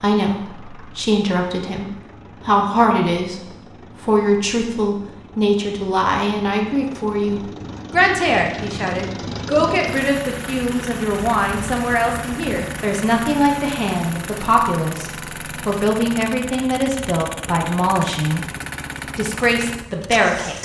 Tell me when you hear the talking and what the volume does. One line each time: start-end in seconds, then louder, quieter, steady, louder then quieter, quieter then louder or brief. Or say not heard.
0.0-1.9 brief
2.5-3.4 brief
4.0-20.6 steady.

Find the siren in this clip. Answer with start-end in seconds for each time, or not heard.
not heard.